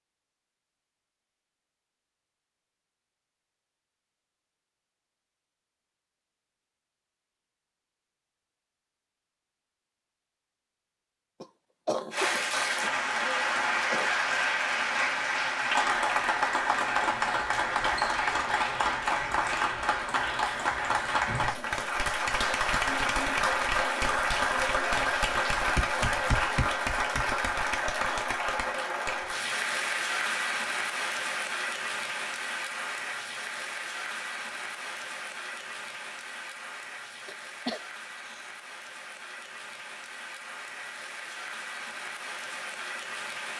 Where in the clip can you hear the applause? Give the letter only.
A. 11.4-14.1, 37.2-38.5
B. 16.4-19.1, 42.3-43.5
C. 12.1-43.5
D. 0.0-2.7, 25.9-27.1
C.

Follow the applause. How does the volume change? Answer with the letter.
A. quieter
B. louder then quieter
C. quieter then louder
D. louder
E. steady
A.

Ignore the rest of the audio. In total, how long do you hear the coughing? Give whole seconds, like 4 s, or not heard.
4 s.